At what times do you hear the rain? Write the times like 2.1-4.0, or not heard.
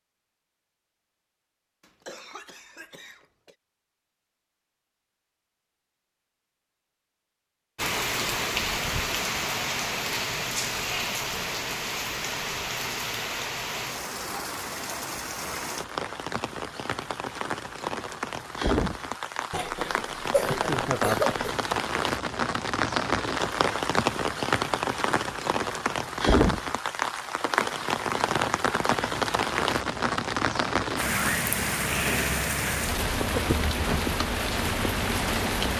7.8-35.7.